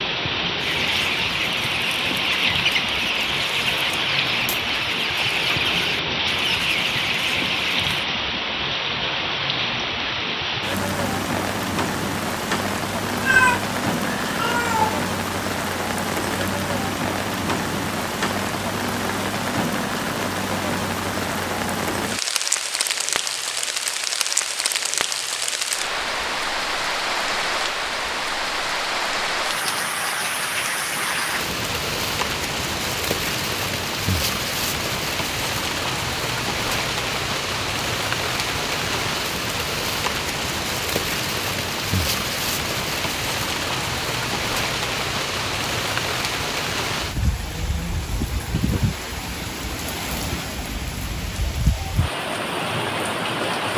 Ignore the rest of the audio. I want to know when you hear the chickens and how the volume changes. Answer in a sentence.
The chickens can be heard from 0.6 to 8.1 s, at a steady volume.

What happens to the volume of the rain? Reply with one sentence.
The loudness of the rain stays about the same.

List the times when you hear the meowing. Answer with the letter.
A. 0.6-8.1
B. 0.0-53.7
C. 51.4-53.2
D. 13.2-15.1
D.